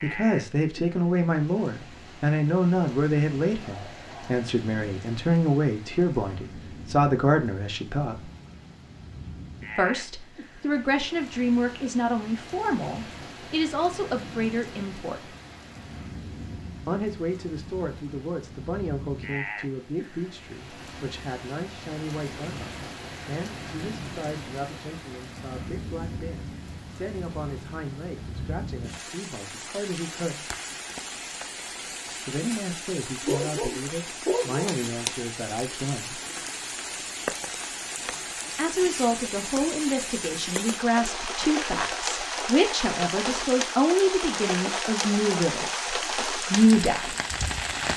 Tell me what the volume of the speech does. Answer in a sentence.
The volume of the speech goes down, then up.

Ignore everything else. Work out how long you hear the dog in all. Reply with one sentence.
You can hear the dog for 2 seconds altogether.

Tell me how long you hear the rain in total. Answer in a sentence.
You can hear the rain for 48 seconds altogether.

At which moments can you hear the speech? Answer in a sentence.
You can hear the speech from 0.0 to 8.2 s, from 9.8 to 15.3 s, from 16.9 to 30.4 s, from 32.2 to 36.2 s and from 38.5 to 47.1 s.